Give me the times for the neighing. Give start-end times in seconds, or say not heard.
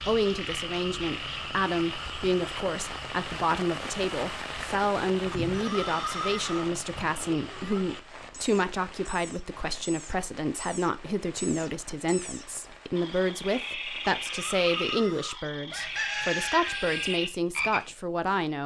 5.3-6.7, 14.2-15.3.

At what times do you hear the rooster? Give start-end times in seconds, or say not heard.
15.7-17.2.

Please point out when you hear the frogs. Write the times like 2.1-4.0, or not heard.
0.0-18.4.